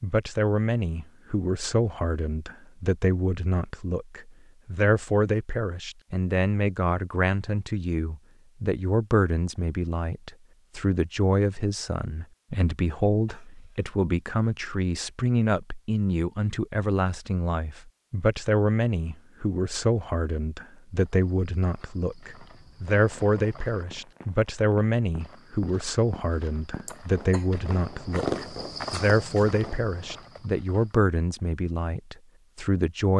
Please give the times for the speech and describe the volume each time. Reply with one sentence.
The speech can be heard from 0.0 to 33.1 s, at a steady volume.